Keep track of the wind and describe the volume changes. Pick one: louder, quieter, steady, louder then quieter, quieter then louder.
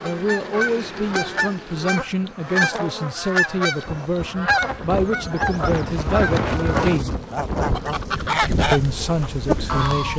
louder then quieter.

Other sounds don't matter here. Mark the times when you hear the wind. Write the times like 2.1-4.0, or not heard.
3.9-10.1.